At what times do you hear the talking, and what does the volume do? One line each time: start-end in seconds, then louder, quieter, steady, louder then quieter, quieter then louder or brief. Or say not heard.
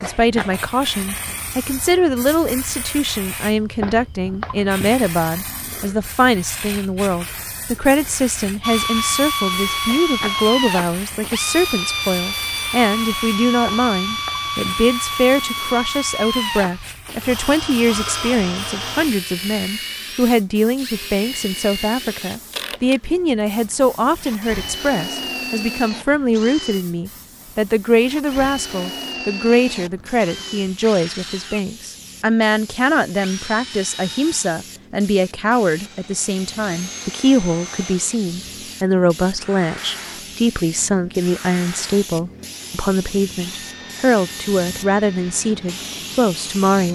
0.0-46.8 steady.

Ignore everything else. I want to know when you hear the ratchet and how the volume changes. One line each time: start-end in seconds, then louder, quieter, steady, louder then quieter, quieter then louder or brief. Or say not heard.
not heard.